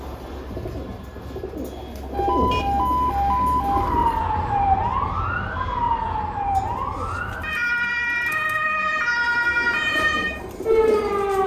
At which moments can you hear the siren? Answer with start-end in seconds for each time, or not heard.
2.1-11.4.